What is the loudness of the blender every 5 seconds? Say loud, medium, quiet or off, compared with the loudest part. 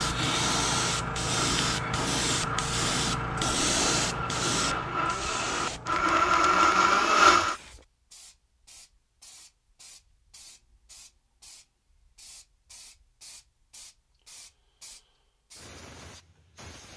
quiet, loud, off, off.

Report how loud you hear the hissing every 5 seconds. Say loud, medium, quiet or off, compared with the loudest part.
loud, quiet, quiet, quiet.